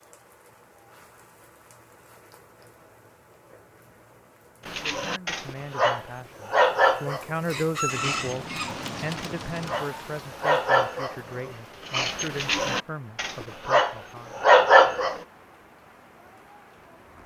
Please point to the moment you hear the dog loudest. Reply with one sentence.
The volume of the dog peaks at 15 seconds.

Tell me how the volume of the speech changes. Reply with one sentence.
The loudness of the speech goes up, then down.